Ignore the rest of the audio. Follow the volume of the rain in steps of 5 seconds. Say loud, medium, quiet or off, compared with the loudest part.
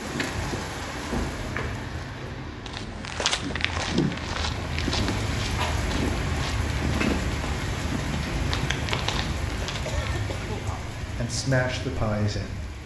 loud, loud, medium.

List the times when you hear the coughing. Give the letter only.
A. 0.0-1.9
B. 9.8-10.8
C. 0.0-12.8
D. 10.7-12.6
B.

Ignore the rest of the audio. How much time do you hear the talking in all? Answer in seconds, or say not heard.
2 s.